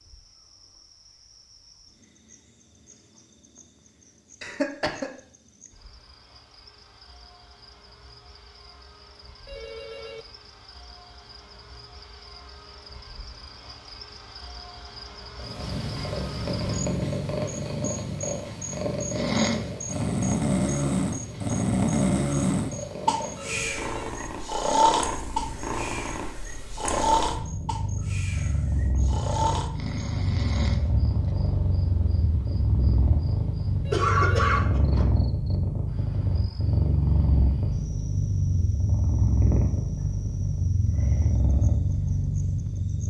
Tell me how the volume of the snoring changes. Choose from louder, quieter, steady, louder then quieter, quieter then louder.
quieter.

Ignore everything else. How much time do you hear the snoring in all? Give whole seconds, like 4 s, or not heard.
12 s.